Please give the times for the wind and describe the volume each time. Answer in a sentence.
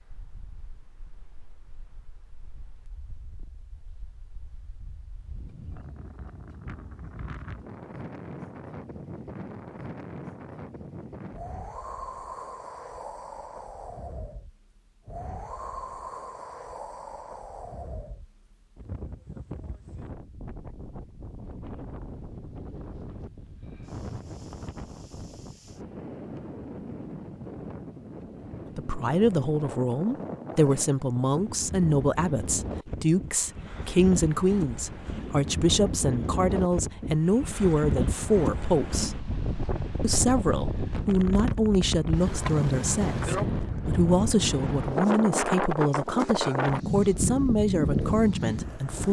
You can hear the wind from 0.0 to 49.0 s, getting louder.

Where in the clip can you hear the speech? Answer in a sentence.
The speech can be heard from 28.8 to 39.1 s and from 40.0 to 49.0 s.